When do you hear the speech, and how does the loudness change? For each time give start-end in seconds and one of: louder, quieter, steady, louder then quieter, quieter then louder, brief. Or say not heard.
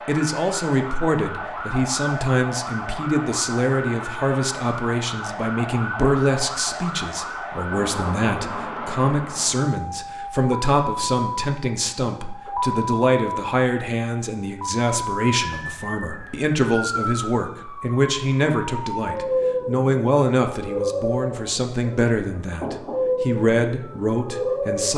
0.1-24.9 steady.